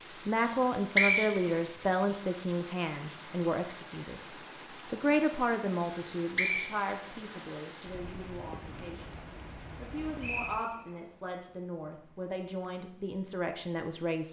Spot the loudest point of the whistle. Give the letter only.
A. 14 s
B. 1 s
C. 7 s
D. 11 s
B.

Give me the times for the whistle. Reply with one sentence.
You can hear the whistle from 0.5 to 2.0 s, from 6.3 to 7.5 s and from 10.2 to 11.0 s.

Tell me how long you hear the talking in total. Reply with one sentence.
The talking can be heard for 13 seconds in total.